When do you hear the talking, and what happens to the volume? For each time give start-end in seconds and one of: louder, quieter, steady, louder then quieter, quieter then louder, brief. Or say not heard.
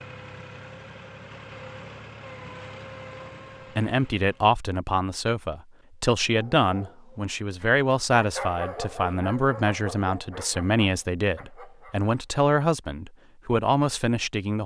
3.8-14.6 steady.